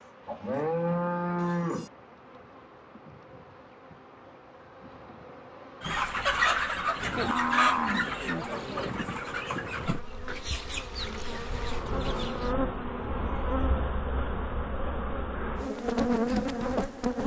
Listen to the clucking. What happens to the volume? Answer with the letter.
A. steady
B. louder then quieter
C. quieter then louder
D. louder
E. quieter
E.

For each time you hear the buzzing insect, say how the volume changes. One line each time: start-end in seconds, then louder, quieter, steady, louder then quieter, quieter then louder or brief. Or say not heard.
0.0-17.2 louder.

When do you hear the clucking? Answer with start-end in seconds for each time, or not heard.
5.8-12.6.